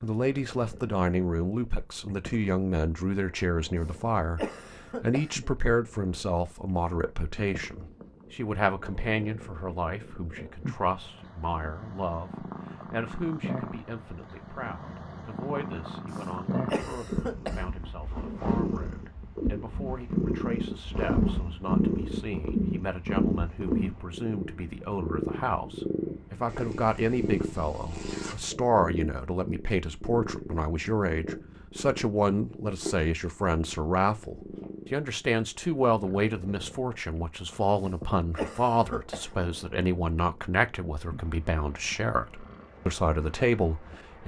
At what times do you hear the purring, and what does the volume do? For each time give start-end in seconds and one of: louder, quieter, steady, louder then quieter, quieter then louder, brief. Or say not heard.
0.1-44.2 louder then quieter.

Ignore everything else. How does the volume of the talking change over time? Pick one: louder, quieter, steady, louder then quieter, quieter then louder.
quieter then louder.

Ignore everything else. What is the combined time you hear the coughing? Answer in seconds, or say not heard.
5 s.